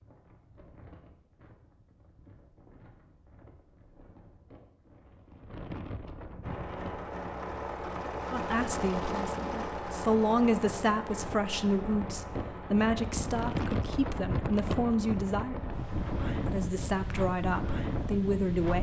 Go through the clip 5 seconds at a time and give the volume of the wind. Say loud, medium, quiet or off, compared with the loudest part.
quiet, medium, loud, loud.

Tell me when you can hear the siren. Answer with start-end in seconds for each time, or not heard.
not heard.